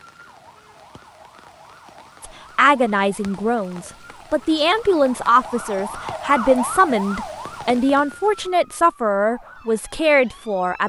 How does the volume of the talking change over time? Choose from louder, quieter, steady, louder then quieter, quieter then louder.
steady.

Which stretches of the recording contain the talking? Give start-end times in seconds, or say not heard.
2.2-10.8.